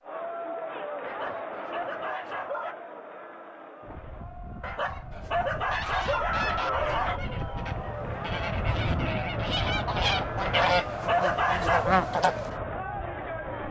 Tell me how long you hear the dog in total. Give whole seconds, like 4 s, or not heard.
6 s.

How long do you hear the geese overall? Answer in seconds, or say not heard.
7 s.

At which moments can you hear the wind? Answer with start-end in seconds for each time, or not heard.
3.8-13.6.